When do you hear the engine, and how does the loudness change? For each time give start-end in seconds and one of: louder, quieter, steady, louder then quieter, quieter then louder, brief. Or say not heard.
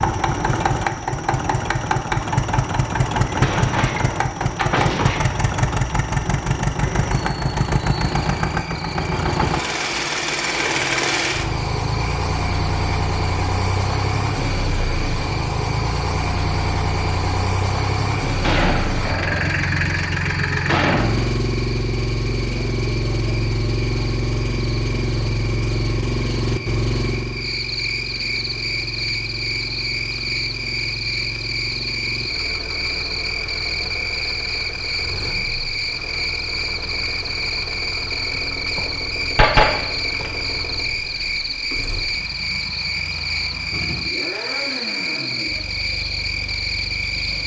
0.0-47.4 quieter.